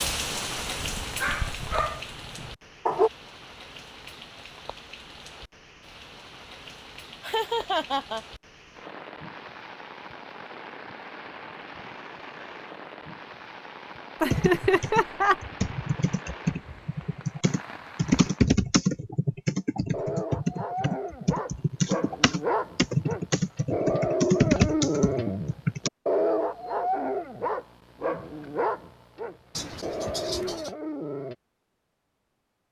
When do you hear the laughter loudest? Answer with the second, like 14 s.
15 s.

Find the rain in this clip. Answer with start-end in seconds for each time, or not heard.
0.0-18.5.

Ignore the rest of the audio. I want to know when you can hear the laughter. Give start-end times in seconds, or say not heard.
7.2-8.2, 14.2-15.3, 29.6-30.7.